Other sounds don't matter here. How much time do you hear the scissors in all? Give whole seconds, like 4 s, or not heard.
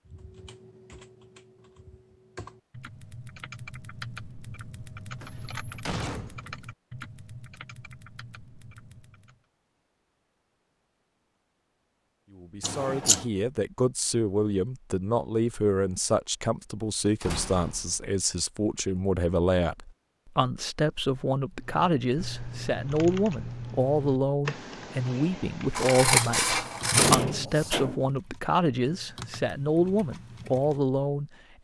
2 s.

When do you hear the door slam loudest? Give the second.
27 s.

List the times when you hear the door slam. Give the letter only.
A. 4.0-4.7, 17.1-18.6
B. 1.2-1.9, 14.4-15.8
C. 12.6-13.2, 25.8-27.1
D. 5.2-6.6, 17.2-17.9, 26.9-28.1
D.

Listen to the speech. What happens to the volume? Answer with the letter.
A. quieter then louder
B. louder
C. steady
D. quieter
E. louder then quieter
C.